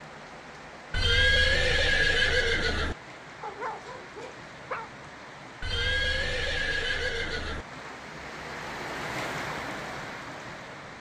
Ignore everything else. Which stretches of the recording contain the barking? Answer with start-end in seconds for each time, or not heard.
3.4-4.9.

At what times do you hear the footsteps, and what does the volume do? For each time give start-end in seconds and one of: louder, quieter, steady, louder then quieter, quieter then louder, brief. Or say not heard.
not heard.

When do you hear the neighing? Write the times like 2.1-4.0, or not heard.
0.9-3.0, 5.6-7.7.